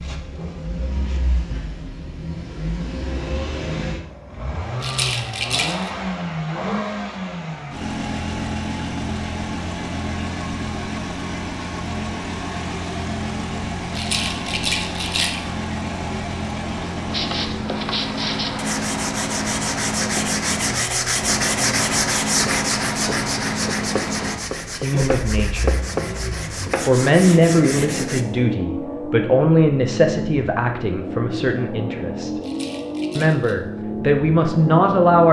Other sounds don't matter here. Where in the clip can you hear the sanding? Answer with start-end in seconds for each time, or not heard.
17.1-28.2.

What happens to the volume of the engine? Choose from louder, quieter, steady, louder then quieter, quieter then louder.
steady.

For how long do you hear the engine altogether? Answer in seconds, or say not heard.
35 s.